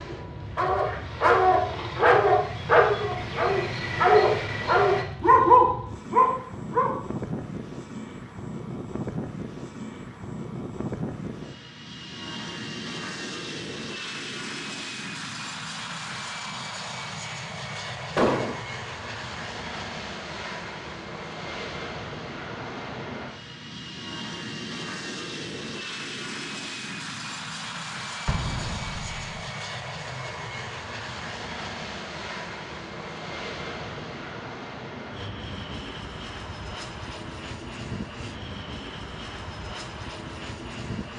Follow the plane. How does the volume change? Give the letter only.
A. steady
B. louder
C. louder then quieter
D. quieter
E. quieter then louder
A.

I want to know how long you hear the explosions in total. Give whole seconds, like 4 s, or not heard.
2 s.